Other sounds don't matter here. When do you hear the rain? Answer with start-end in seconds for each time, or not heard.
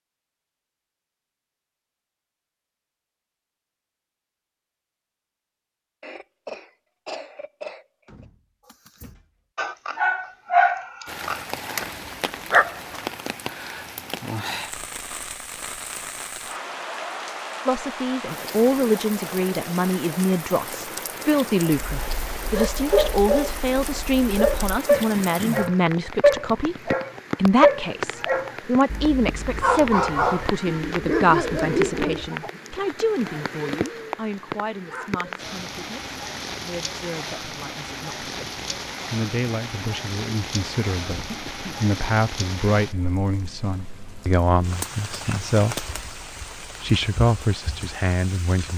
11.1-48.7.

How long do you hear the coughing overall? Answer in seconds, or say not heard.
4 s.